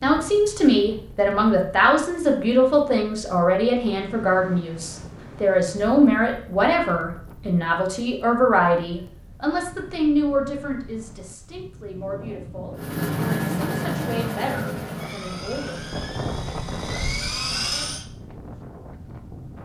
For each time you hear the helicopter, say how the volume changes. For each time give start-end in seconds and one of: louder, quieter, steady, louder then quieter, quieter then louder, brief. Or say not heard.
12.8-18.1 quieter then louder.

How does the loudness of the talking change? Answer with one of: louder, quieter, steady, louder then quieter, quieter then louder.
quieter.